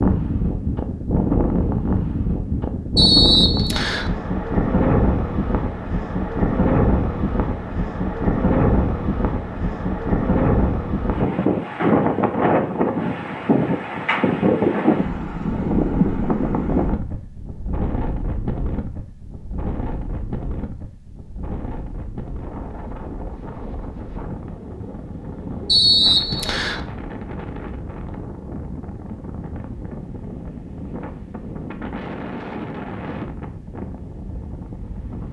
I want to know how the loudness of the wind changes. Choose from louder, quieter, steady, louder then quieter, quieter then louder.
quieter.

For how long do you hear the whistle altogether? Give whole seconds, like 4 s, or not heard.
2 s.